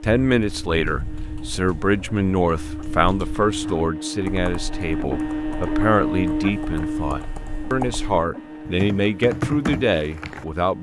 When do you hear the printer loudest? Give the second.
6 s.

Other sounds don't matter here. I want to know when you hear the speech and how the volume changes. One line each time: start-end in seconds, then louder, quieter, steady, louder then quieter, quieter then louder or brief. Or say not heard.
0.0-10.7 steady.